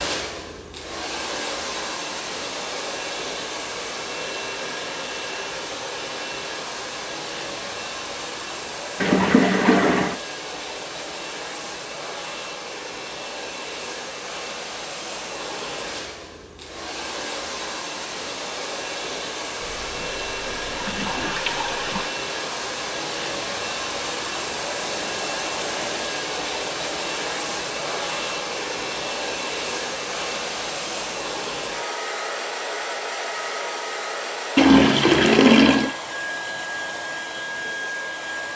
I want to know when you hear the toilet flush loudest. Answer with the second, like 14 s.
35 s.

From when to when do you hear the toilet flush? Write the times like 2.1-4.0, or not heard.
9.0-10.2, 19.6-22.1, 34.5-36.0.